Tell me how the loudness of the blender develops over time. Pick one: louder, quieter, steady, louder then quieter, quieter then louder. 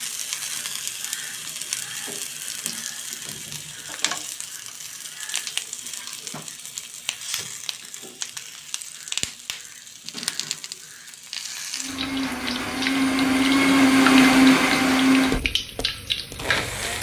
louder then quieter.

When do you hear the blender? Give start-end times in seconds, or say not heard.
11.8-16.9.